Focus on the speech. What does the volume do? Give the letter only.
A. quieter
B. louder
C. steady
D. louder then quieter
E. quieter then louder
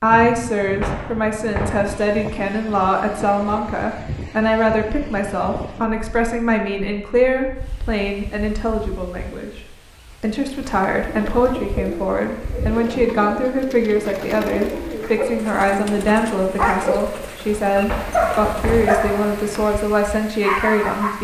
C.